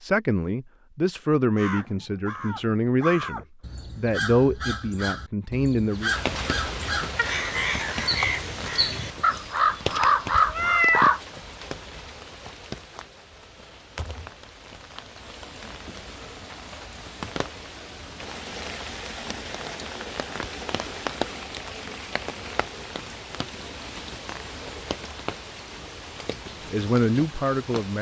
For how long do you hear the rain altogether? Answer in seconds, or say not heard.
22 s.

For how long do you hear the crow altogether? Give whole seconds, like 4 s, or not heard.
10 s.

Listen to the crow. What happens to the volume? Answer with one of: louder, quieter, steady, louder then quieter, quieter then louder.
louder.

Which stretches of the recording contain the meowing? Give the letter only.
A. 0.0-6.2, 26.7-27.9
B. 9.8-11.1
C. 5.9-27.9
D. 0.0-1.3
B.